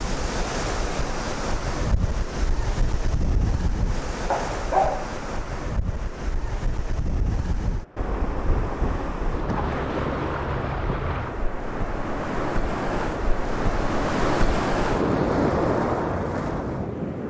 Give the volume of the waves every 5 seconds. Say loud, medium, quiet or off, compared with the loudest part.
medium, medium, loud, loud.